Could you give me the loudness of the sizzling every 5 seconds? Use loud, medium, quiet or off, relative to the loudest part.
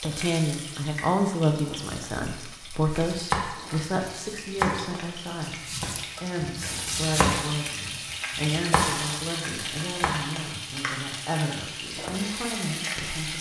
medium, loud, loud.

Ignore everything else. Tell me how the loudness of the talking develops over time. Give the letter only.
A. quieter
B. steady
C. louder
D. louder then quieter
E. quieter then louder
A.